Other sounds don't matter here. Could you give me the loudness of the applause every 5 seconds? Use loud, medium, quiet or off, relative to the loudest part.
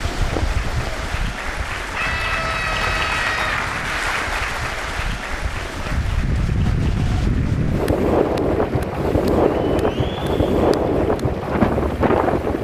loud, medium, quiet.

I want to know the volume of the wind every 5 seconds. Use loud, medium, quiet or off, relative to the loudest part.
quiet, loud, loud.